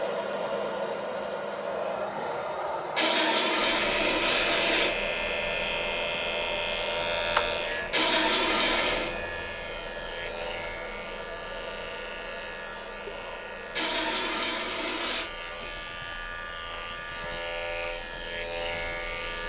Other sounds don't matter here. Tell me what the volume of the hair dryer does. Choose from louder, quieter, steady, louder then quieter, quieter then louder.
quieter.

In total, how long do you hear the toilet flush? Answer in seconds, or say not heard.
5 s.